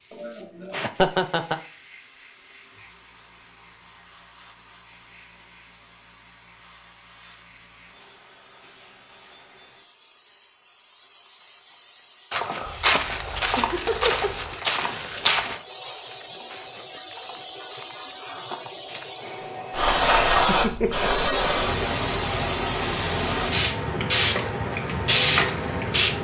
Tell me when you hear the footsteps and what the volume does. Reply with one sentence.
You can hear the footsteps from 12.3 to 19.3 s, getting quieter.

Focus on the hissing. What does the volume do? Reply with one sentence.
The volume of the hissing goes up.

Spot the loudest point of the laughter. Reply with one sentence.
The volume of the laughter peaks at 1 second.